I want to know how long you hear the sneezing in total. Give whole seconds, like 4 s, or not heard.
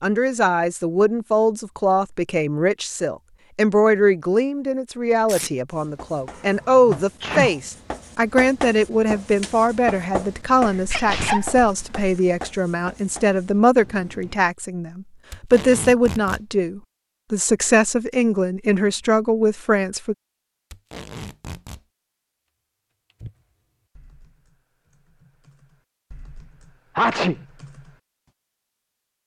3 s.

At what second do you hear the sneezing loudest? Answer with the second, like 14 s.
27 s.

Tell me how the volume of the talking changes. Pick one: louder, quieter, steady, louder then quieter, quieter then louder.
steady.